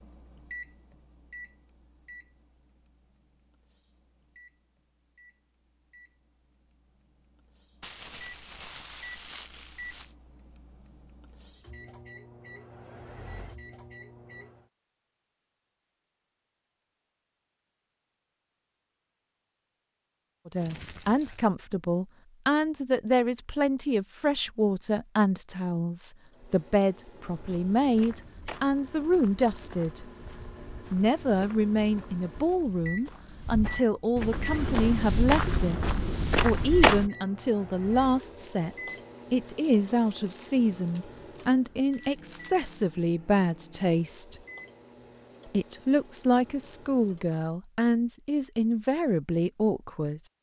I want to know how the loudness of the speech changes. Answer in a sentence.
The loudness of the speech stays about the same.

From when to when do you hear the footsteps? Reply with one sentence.
You can hear the footsteps from 27.2 to 37.1 s.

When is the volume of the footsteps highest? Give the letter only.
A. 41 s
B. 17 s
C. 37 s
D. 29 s
C.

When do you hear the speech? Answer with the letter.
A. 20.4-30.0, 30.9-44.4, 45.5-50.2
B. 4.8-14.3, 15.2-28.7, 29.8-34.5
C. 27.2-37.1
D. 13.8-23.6
A.